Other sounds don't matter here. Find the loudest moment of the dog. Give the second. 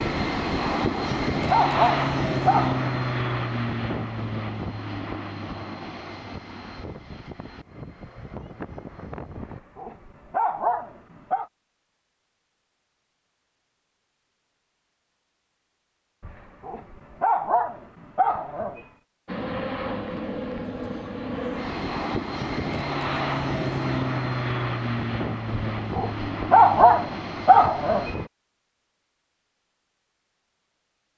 27 s.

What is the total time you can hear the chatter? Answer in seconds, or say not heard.
not heard.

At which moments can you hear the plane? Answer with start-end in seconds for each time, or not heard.
0.0-9.6, 19.2-28.3.